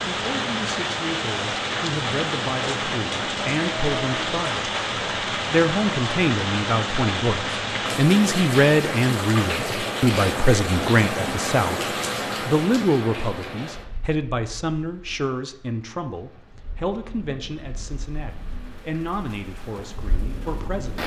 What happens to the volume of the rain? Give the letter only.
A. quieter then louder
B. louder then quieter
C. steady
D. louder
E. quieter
E.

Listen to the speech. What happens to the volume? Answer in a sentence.
The loudness of the speech goes up, then down.